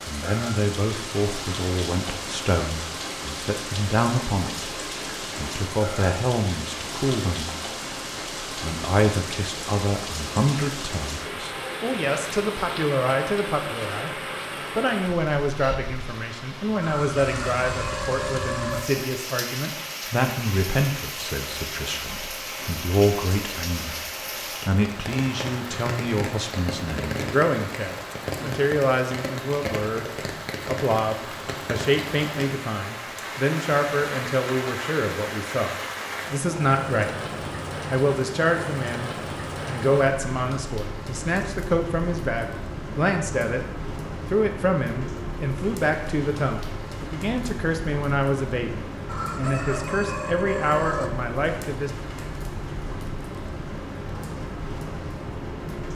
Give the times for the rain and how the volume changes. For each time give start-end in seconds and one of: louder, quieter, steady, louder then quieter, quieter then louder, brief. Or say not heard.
0.0-55.8 steady.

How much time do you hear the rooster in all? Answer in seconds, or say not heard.
4 s.